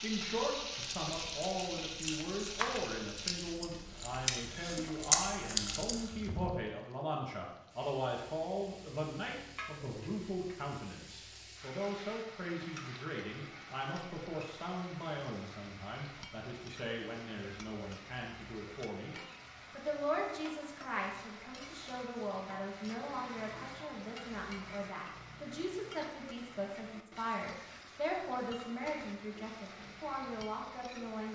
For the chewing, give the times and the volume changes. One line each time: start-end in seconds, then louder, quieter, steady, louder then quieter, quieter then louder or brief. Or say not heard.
0.8-6.0 louder.